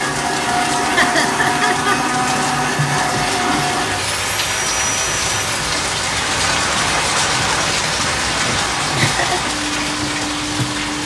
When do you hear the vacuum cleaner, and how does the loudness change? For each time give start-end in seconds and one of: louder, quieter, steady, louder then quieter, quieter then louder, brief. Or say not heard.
0.0-11.0 quieter.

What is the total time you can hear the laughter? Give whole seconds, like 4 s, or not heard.
2 s.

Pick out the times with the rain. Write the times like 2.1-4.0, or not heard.
0.0-11.0.